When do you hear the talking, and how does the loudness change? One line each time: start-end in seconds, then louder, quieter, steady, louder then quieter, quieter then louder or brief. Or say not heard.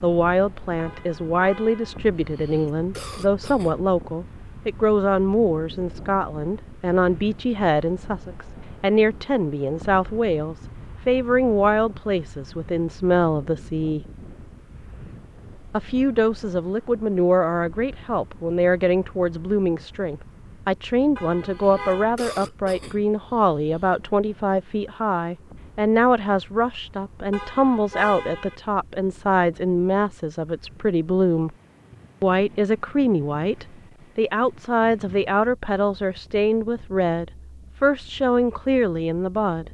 0.0-14.0 steady
15.7-31.5 steady
32.2-39.6 steady.